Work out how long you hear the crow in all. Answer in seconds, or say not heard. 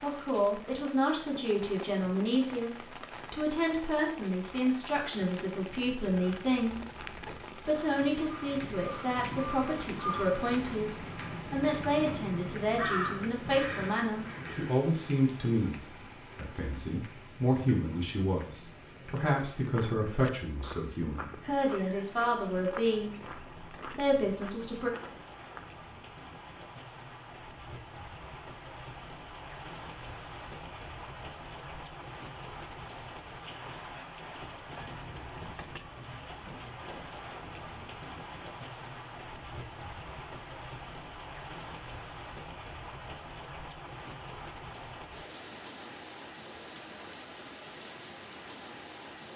9 s.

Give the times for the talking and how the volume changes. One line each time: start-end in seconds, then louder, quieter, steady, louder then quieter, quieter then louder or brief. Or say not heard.
0.0-24.9 steady.